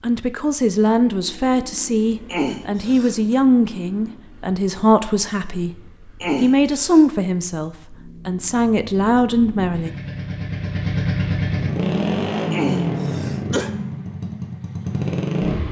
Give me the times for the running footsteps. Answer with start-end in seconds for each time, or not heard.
not heard.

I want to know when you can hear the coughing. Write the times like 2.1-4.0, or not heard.
2.2-3.4, 6.2-7.0, 12.5-13.7.